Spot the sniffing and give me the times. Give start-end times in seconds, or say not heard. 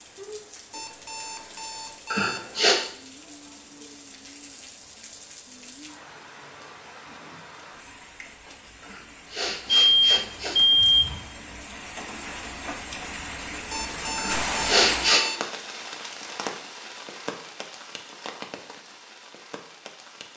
2.1-2.8, 8.8-10.6, 14.2-15.2.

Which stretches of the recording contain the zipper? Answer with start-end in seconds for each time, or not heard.
not heard.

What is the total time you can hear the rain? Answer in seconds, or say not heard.
20 s.